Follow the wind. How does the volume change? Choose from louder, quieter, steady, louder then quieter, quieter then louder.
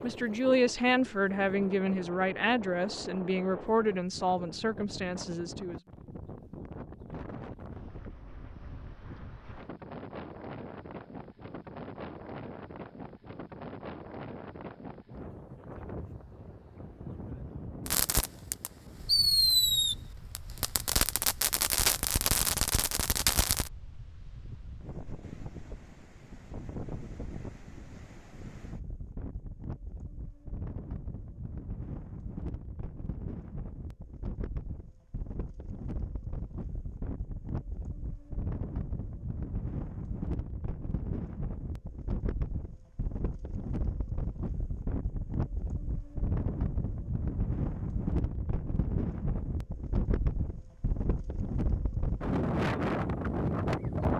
louder.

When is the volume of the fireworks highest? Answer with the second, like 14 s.
19 s.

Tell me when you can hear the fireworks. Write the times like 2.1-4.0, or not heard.
17.9-23.7.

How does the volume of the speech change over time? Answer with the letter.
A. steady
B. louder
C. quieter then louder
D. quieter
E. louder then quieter
D.